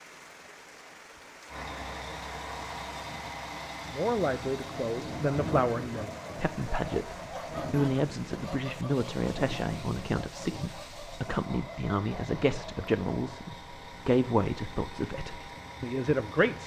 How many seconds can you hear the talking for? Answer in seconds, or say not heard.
13 s.